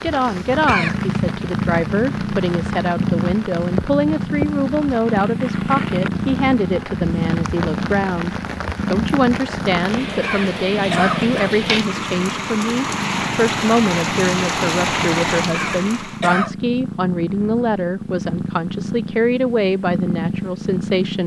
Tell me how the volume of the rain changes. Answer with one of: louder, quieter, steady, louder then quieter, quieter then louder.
louder.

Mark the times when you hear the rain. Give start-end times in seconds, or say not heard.
0.0-16.3.